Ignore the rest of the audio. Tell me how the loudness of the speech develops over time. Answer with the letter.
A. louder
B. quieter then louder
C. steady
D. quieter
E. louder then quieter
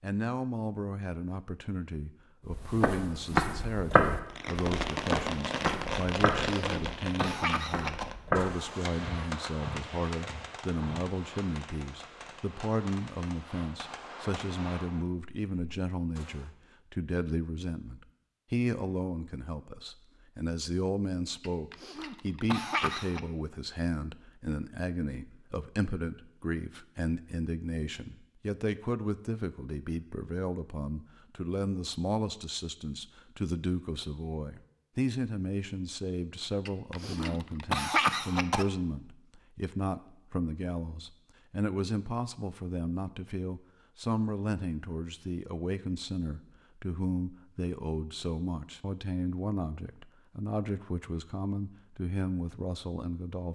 C.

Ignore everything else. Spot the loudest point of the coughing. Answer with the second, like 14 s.
38 s.